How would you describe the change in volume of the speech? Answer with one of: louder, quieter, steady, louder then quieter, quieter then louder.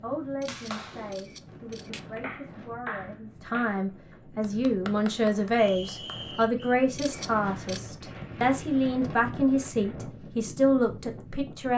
louder.